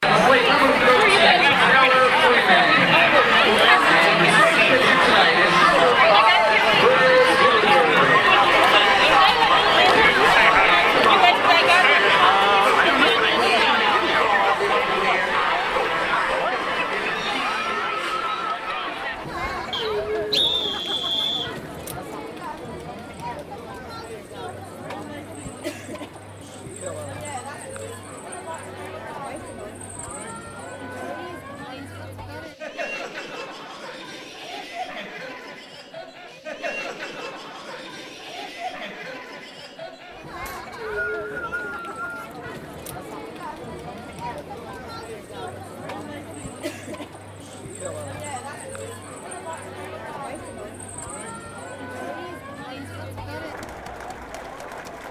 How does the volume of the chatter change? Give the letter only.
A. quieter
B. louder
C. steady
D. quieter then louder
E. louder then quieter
A.